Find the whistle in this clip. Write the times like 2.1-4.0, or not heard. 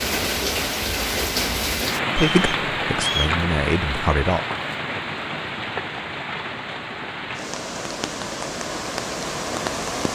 2.1-3.4.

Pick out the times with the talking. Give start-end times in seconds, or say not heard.
2.1-4.4.